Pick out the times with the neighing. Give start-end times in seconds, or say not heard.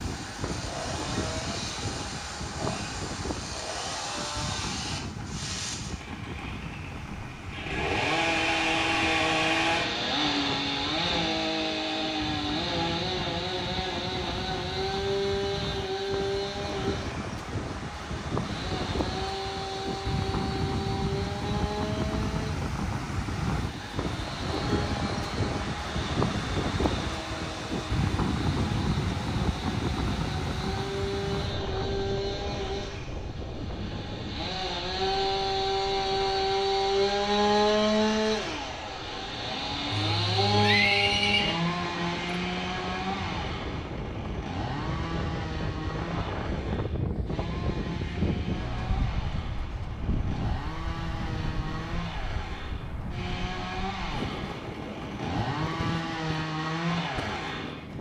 39.9-41.5.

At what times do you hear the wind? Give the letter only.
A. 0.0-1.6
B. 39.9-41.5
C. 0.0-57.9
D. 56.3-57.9
C.